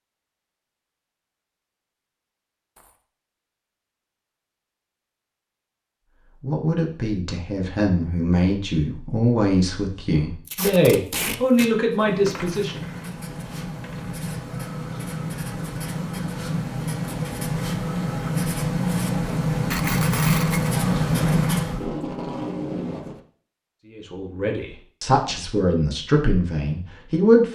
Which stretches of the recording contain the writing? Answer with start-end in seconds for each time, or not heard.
11.8-21.9.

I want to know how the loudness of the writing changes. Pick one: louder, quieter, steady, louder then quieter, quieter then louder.
louder.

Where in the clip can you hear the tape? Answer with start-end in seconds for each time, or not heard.
10.4-11.7, 21.6-23.2.